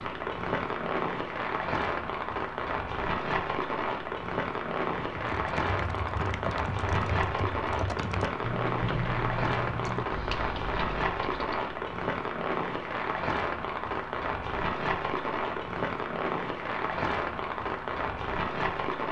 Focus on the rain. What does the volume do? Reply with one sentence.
The volume of the rain stays about the same.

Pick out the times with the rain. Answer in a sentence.
The rain can be heard from 0.0 to 19.0 s.